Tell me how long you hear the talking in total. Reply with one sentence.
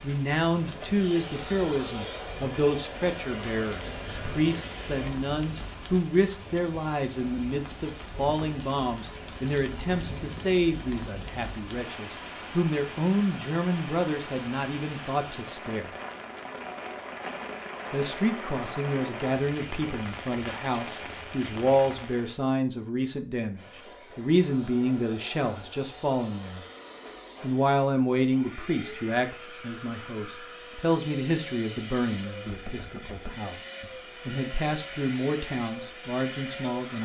You can hear the talking for 34 seconds altogether.